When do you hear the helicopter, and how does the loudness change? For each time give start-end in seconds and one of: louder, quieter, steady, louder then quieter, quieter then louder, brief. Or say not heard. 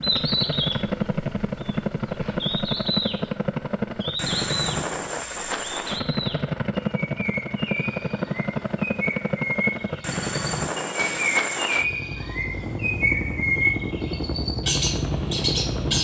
0.0-15.9 steady.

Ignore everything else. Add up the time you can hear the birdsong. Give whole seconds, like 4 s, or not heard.
16 s.